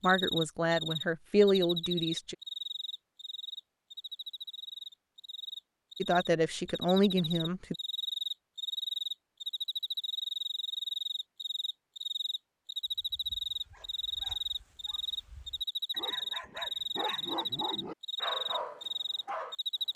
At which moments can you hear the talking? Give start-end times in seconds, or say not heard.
0.0-2.4, 6.0-7.8.